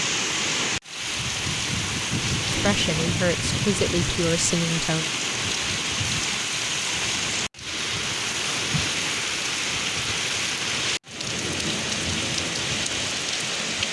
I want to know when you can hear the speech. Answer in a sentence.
You can hear the speech from 2.5 to 5.0 s.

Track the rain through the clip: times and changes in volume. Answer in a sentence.
The rain can be heard from 0.0 to 13.8 s, at a steady volume.